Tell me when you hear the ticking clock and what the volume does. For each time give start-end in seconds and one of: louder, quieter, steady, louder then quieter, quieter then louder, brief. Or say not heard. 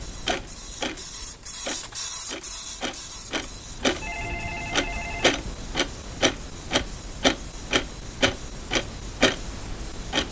0.0-10.2 louder.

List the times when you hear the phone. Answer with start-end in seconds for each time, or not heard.
3.8-5.4.